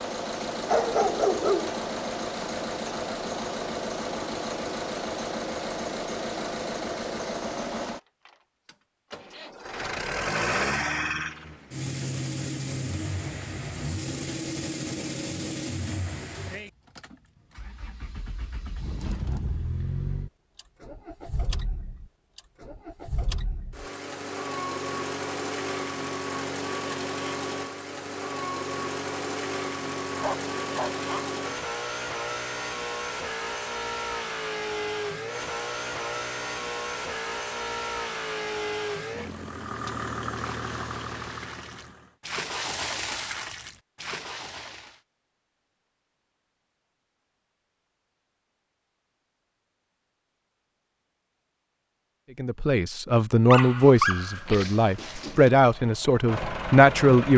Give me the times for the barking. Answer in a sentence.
You can hear the barking from 0.7 to 1.9 s, from 30.1 to 31.2 s and from 53.5 to 55.5 s.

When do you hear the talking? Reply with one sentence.
The talking can be heard from 52.4 to 57.3 s.